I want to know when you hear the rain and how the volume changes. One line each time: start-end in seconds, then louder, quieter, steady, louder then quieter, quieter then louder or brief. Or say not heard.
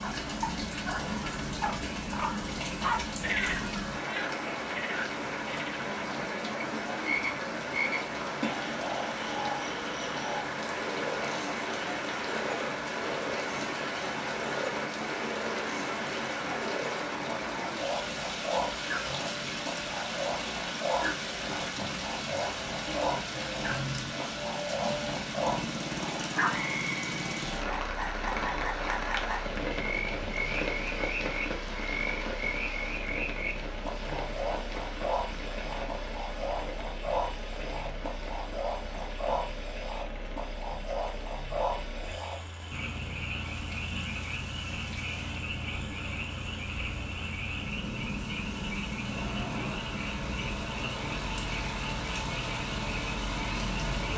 0.0-54.1 quieter.